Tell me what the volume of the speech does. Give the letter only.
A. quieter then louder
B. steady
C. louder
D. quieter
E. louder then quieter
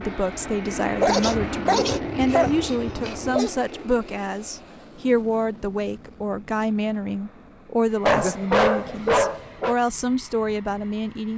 B.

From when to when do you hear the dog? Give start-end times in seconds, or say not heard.
1.0-3.5, 8.1-9.8.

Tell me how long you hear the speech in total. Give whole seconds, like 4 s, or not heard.
11 s.